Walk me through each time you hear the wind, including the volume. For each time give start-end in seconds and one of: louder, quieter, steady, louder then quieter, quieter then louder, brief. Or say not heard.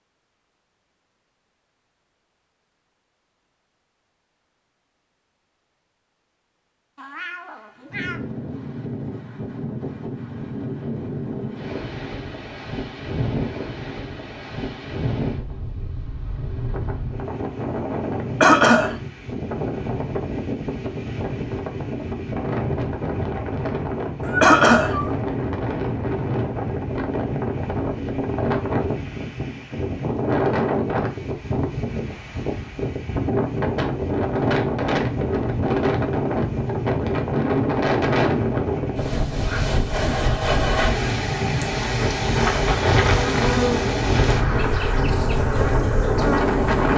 7.9-46.9 louder.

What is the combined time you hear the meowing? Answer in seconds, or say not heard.
2 s.